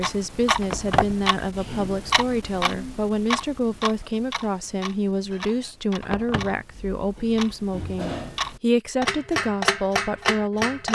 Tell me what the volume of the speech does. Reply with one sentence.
The loudness of the speech stays about the same.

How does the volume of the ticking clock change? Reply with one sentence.
The loudness of the ticking clock goes down, then up.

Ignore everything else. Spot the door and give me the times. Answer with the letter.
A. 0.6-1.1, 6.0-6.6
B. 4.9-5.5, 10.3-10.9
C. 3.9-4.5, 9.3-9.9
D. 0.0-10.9
A.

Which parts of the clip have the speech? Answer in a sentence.
The speech can be heard from 0.0 to 10.9 s.